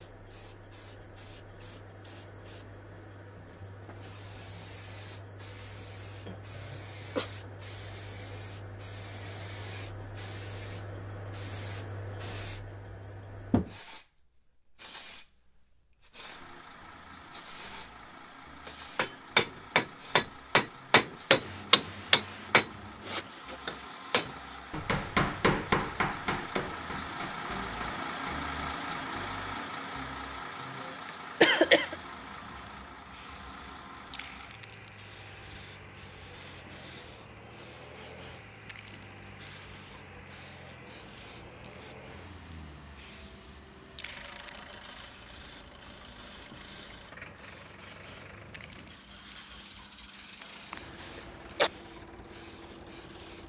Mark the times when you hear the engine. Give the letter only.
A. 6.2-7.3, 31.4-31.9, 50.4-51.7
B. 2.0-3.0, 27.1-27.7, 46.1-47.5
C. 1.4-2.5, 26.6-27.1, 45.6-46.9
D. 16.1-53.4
D.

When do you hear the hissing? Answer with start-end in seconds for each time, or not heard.
0.0-53.4.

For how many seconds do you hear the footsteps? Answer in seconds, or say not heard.
not heard.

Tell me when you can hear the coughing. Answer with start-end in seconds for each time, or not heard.
6.2-7.3, 31.4-31.9, 50.4-51.7.